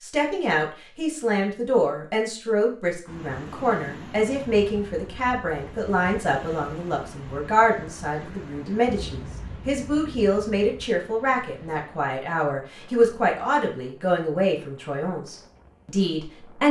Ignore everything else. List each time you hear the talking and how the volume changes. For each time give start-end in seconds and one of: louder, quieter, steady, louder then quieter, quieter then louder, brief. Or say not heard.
0.0-16.6 steady.